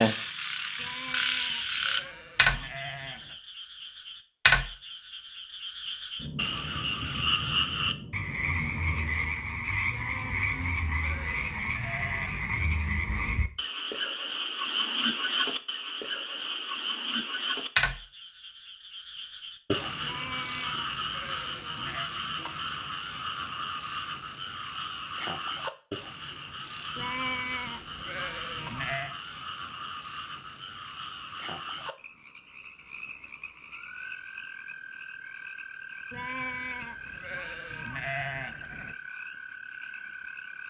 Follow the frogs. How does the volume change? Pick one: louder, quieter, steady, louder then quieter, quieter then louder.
quieter.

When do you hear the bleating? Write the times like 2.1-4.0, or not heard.
0.8-3.4, 9.9-12.5, 20.0-22.1, 26.9-29.1, 36.1-39.0.